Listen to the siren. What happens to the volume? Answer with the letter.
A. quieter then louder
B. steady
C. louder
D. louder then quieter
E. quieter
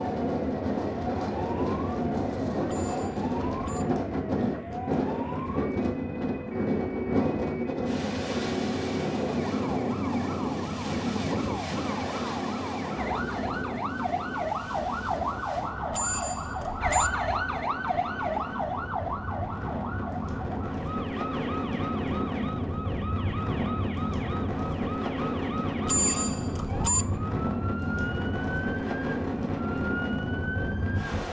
D.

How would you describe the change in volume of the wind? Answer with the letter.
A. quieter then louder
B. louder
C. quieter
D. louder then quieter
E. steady
A.